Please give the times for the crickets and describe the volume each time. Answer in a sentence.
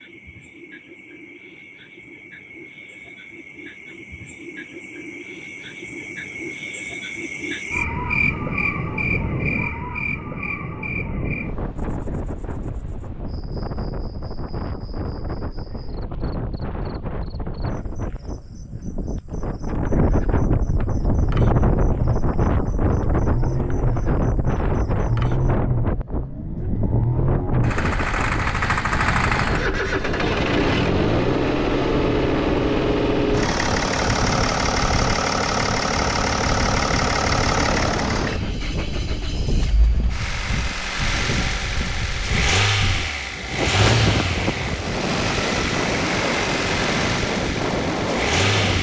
The crickets can be heard from 0.0 to 25.6 s, getting louder then quieter.